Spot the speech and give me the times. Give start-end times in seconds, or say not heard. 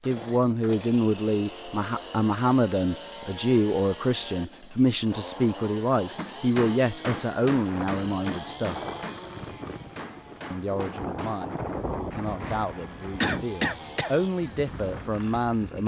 0.1-8.8, 10.5-15.8.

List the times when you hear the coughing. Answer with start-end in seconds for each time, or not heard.
13.2-14.1.